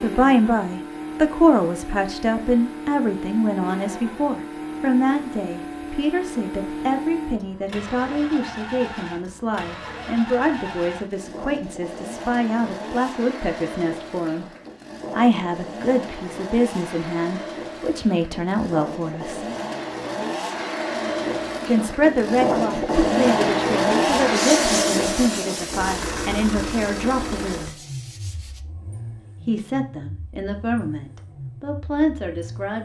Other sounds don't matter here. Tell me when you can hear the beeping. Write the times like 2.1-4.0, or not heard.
not heard.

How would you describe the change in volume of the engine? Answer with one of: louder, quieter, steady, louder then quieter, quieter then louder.
louder then quieter.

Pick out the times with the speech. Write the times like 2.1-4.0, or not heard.
0.0-14.4, 15.2-19.5, 21.6-27.8, 29.4-32.8.